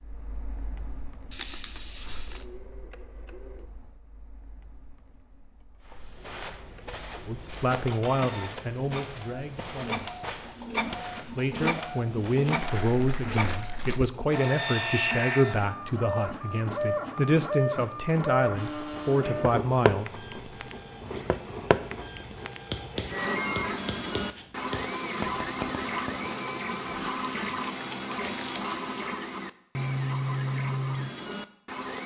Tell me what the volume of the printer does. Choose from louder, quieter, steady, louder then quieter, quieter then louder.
louder.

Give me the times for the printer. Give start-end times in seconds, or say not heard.
0.0-32.0.